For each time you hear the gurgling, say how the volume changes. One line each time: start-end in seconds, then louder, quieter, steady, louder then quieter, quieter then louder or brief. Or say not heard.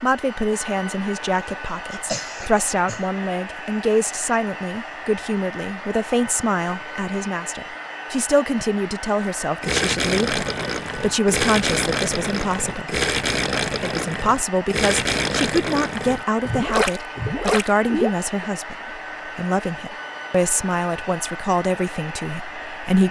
9.6-18.4 steady.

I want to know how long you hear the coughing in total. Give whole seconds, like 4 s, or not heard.
2 s.